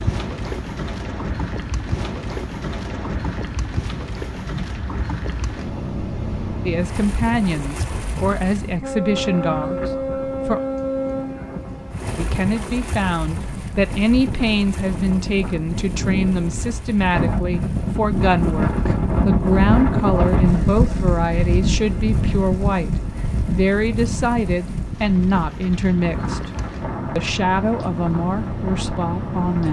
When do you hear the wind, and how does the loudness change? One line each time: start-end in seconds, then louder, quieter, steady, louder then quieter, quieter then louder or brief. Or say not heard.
0.0-29.6 louder then quieter.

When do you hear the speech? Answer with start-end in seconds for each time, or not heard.
6.7-10.6, 12.2-26.5, 27.1-29.6.